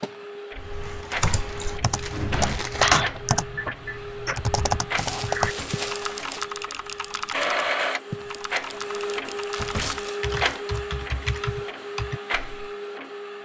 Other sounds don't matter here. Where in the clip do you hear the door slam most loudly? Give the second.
2 s.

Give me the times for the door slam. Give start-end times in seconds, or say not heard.
1.9-2.6, 5.4-5.8, 9.6-10.1.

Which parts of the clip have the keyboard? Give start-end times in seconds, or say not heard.
0.6-12.7.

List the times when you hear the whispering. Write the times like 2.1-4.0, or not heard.
not heard.